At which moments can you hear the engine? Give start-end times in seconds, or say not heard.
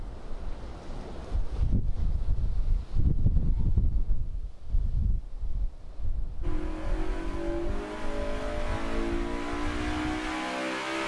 6.4-11.0.